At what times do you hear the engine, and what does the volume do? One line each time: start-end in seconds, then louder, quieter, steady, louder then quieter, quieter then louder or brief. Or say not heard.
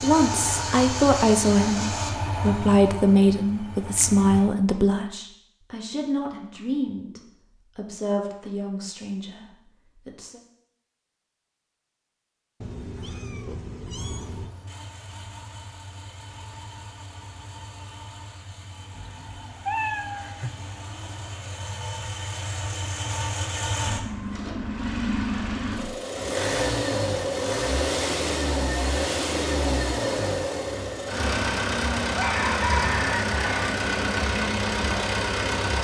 0.0-4.4 quieter
13.9-35.8 louder.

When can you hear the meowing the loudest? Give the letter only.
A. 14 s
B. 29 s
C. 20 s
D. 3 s
C.